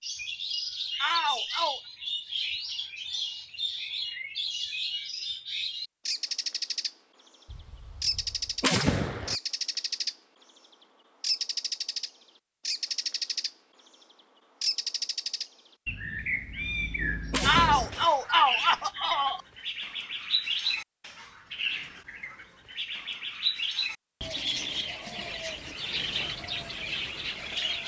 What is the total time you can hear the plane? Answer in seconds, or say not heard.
not heard.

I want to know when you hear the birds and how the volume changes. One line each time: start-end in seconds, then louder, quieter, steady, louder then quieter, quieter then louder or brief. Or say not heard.
0.0-10.6 steady
11.2-27.8 steady.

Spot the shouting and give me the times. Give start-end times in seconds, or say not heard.
0.9-1.8, 17.4-19.4.